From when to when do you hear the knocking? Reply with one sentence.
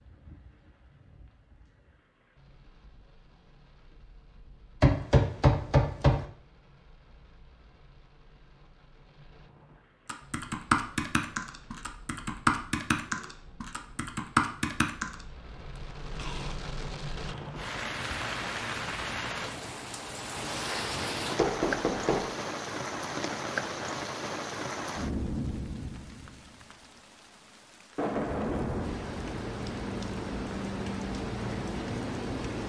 The knocking can be heard from 4.8 to 6.2 s and from 21.4 to 22.3 s.